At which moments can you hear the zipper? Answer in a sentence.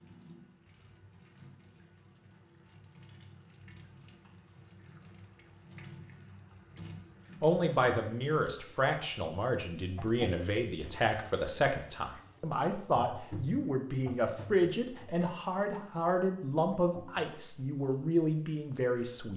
The zipper can't be heard in this clip.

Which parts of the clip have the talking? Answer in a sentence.
You can hear the talking from 7.4 to 19.3 s.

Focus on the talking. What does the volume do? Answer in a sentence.
The loudness of the talking stays about the same.